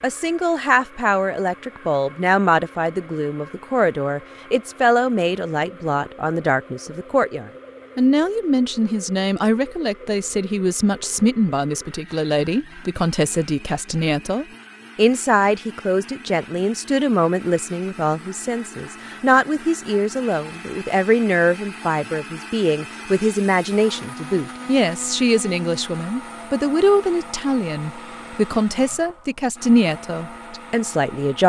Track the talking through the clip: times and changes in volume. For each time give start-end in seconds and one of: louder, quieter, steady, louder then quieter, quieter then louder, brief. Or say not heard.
0.0-31.4 steady.